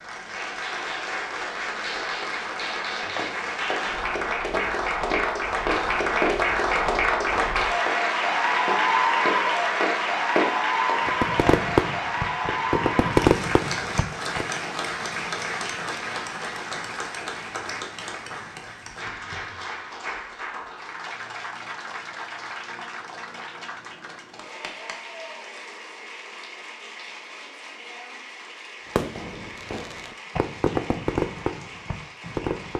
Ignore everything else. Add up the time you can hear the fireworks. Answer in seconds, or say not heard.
7 s.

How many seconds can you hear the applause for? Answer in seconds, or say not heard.
33 s.